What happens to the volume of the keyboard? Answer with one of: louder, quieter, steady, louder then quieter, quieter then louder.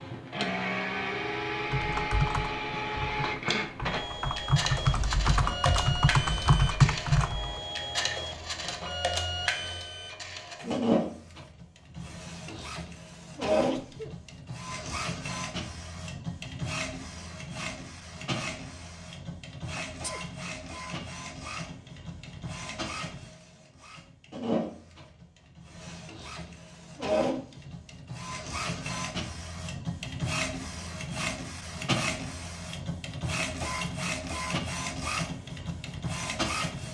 quieter then louder.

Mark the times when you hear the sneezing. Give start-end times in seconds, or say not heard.
13.7-14.2, 19.8-20.2.